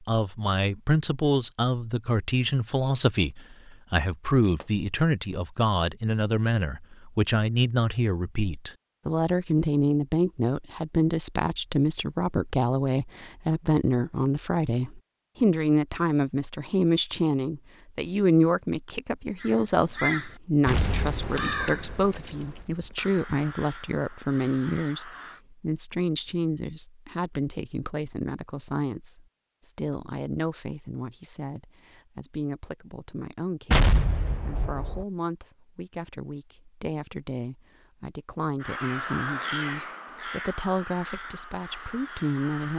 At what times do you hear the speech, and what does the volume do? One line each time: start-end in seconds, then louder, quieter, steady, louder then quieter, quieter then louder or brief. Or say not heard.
0.1-42.7 quieter.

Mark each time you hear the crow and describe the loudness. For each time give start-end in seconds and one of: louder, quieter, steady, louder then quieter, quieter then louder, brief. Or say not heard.
19.4-25.4 quieter
38.6-42.7 quieter.